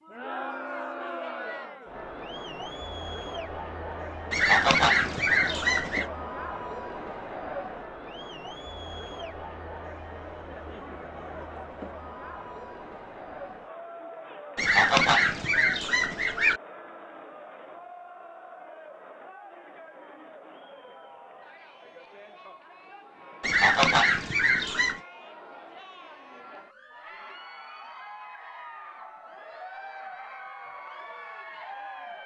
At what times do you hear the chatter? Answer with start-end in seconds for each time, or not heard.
0.0-32.2.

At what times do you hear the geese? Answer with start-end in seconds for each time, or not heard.
4.3-6.0, 14.6-16.6, 23.4-25.0.